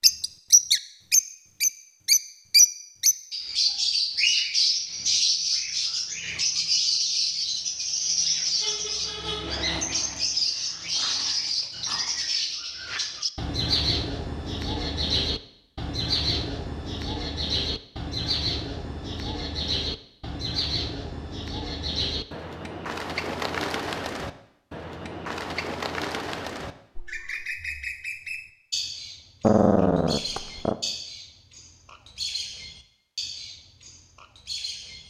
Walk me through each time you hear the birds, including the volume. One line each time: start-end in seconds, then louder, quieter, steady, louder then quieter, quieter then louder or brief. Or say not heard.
0.0-35.0 quieter.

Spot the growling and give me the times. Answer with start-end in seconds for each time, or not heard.
9.7-12.2, 29.4-30.8.